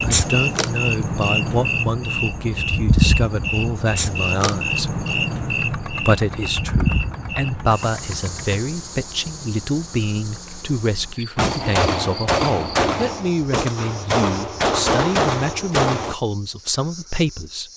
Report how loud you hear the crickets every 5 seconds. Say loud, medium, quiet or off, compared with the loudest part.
loud, medium, quiet, quiet.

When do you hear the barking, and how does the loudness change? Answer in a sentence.
You can't hear the barking here.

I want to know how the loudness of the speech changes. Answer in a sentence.
The loudness of the speech stays about the same.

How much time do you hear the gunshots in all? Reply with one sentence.
The gunshots can be heard for 5 seconds in total.